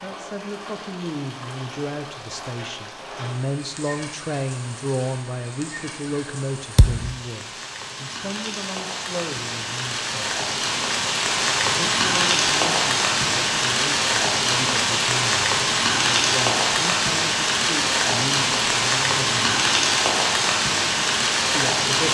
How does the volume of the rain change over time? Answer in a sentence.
The volume of the rain goes up.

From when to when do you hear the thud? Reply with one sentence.
You can hear the thud from 6.8 to 7.2 s.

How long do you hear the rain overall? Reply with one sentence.
The rain can be heard for 22 seconds in total.